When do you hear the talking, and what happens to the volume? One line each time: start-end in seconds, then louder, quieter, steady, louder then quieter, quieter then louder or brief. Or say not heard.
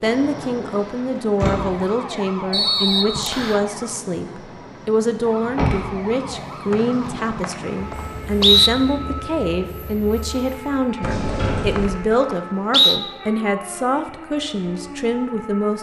0.0-15.7 steady.